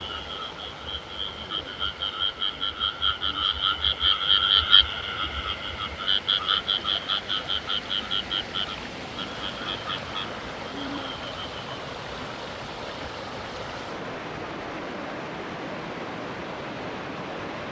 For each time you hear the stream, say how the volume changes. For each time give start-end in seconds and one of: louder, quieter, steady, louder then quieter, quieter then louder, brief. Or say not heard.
0.0-17.6 louder.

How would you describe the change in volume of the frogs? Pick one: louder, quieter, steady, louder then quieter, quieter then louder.
louder then quieter.